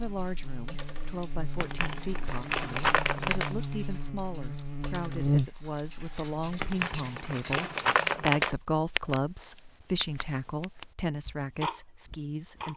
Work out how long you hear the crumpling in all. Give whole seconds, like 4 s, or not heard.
4 s.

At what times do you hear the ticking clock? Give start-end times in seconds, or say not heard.
0.0-12.7.